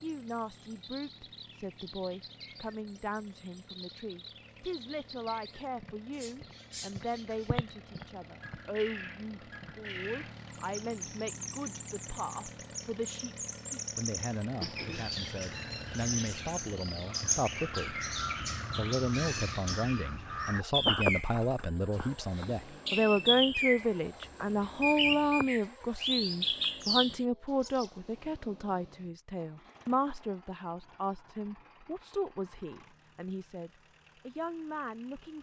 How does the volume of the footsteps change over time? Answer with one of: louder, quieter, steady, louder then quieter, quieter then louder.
louder then quieter.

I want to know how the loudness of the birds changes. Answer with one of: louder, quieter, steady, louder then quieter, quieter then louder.
louder.